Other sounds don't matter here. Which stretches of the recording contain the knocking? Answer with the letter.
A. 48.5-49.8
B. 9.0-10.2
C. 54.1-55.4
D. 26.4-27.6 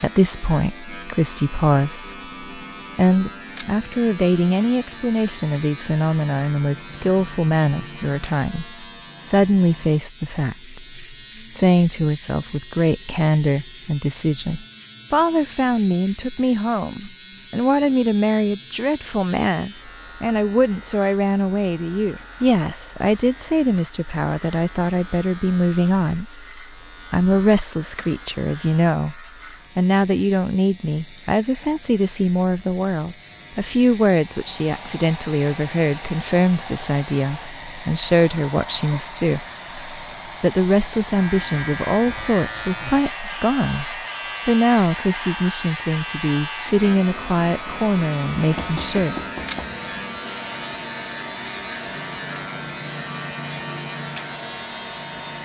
A.